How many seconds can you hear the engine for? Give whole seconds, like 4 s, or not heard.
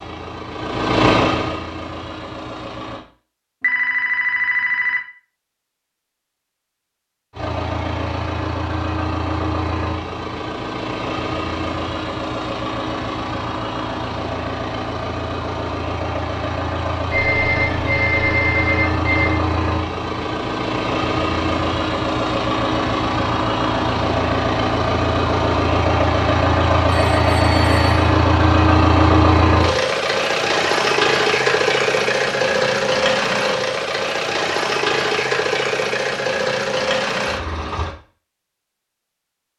34 s.